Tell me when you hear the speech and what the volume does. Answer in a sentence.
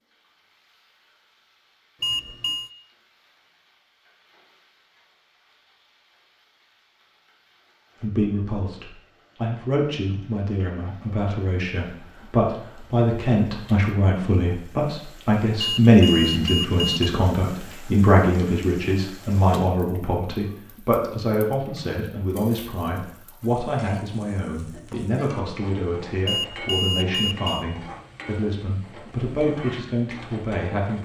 The speech can be heard from 8.0 to 31.0 s, getting louder then quieter.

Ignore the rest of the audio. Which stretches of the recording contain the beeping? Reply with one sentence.
The beeping can be heard from 2.0 to 2.7 s, from 15.6 to 17.1 s and from 26.2 to 27.6 s.